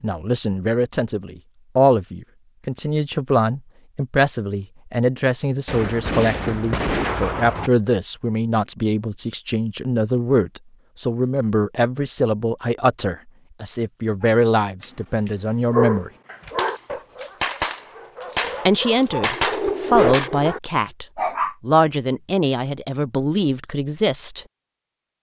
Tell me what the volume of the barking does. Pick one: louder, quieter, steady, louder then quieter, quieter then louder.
quieter then louder.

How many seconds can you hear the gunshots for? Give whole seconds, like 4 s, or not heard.
6 s.